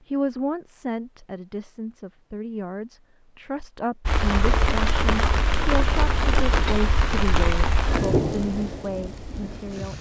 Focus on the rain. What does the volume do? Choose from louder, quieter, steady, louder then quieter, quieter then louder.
quieter.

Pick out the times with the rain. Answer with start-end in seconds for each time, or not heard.
4.0-9.9.